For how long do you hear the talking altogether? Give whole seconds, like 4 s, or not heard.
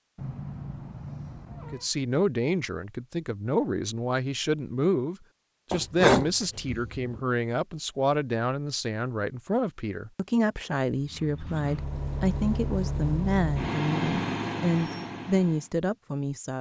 15 s.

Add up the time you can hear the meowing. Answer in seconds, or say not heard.
2 s.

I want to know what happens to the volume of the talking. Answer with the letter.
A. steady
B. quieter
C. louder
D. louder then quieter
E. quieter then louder
A.